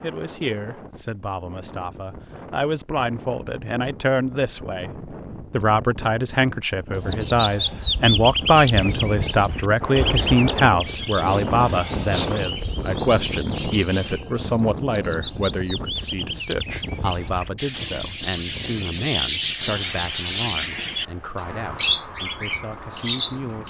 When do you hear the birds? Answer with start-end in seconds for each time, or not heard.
6.9-23.6.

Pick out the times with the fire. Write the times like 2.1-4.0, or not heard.
not heard.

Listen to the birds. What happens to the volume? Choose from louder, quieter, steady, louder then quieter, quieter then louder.
quieter then louder.